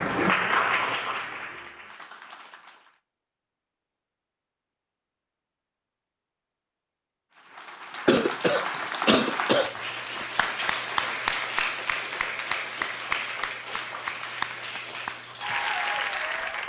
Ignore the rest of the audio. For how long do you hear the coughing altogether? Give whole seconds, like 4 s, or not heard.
2 s.